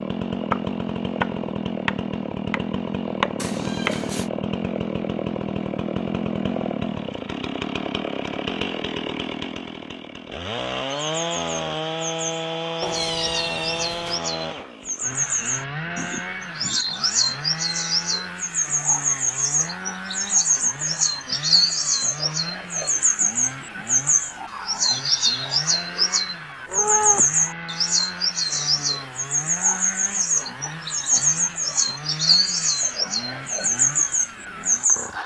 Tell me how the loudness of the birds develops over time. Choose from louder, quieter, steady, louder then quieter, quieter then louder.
louder.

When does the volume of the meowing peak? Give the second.
27 s.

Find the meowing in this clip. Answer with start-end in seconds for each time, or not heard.
3.4-4.3, 12.8-14.2, 26.6-27.4.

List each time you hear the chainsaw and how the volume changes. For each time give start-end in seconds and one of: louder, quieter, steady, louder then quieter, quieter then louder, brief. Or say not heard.
0.0-35.2 quieter.